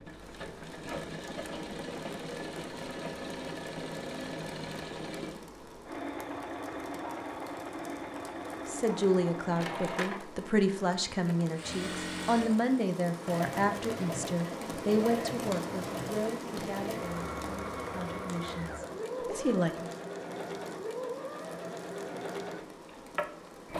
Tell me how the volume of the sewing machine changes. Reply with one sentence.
The volume of the sewing machine stays about the same.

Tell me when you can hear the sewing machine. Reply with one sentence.
The sewing machine can be heard from 0.0 to 23.7 s.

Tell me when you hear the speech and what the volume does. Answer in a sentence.
The speech can be heard from 8.7 to 19.9 s, getting quieter.